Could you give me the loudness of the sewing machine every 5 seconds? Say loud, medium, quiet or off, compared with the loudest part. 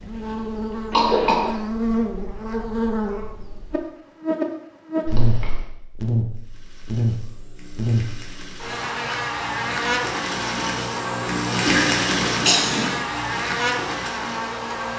off, quiet, loud.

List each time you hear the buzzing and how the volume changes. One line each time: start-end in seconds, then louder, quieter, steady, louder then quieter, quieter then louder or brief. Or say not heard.
0.0-14.9 steady.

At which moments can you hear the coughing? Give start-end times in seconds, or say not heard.
0.9-1.5, 5.0-5.7, 11.7-13.0.